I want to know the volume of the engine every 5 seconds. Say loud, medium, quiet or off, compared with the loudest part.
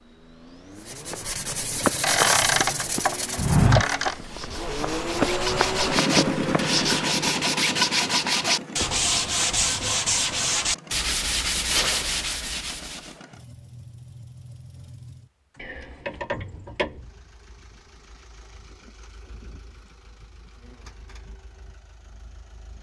medium, loud, quiet, quiet, quiet.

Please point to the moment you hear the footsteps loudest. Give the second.
4 s.